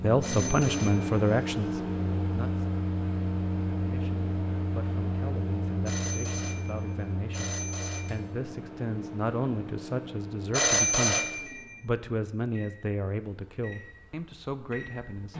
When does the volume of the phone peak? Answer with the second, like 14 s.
11 s.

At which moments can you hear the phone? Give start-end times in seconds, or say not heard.
0.2-1.1, 5.8-8.2, 10.5-11.8.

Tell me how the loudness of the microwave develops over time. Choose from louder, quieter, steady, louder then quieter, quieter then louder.
quieter.